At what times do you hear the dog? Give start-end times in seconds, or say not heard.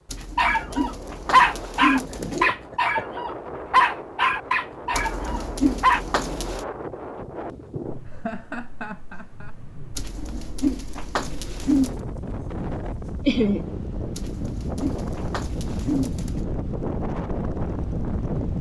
0.3-6.0.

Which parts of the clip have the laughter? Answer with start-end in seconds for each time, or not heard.
2.1-3.0, 8.1-9.6, 13.2-13.7.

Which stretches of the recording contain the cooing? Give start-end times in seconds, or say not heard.
0.1-2.5, 4.9-6.7, 9.9-12.0, 14.1-16.4.